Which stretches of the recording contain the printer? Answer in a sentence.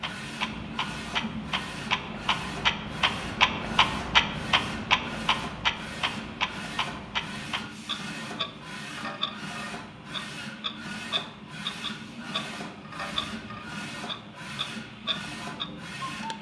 You can hear the printer from 0.0 to 16.3 s.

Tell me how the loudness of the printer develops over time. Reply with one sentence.
The volume of the printer stays about the same.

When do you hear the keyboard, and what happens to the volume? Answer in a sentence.
The keyboard can't be heard in this clip.